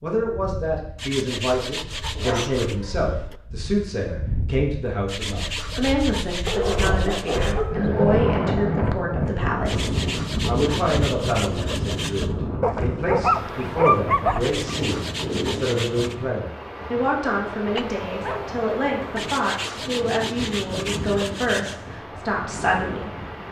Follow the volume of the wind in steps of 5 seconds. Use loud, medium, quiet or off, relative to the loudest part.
medium, loud, loud, medium, medium.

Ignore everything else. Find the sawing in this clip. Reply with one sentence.
You can hear the sawing from 0.9 to 2.8 s, from 5.0 to 7.6 s, from 9.7 to 12.3 s, from 14.4 to 16.1 s and from 19.1 to 21.8 s.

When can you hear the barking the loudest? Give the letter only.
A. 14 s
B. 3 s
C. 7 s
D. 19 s
A.